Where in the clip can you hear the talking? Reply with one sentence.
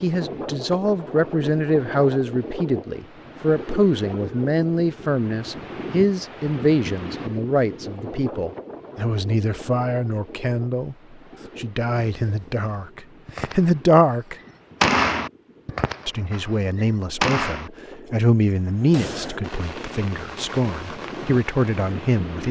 You can hear the talking from 0.0 to 10.9 s, from 11.6 to 14.3 s and from 16.1 to 22.4 s.